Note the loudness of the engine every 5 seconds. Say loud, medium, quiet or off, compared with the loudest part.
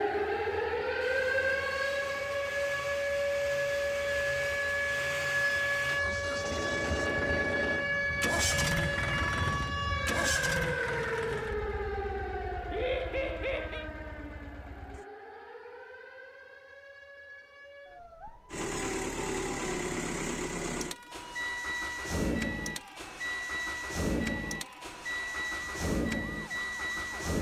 medium, loud, medium, loud, loud, loud.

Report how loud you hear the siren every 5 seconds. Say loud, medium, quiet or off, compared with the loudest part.
loud, loud, medium, quiet, quiet, quiet.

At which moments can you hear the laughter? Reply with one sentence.
The laughter can be heard from 12.7 to 13.8 s.